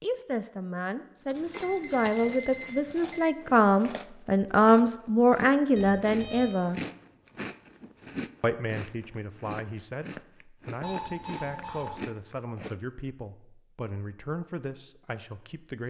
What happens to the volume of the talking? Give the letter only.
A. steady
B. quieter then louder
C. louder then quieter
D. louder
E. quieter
C.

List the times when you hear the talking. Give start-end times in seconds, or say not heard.
0.0-6.8, 8.4-15.8.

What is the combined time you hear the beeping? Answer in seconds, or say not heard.
4 s.